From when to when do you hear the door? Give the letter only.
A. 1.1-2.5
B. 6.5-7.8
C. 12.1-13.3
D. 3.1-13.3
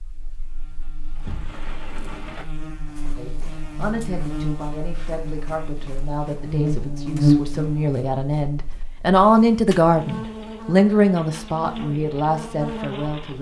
A.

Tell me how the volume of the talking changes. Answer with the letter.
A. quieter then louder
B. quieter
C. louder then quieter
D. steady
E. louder
C.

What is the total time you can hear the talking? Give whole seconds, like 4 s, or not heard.
10 s.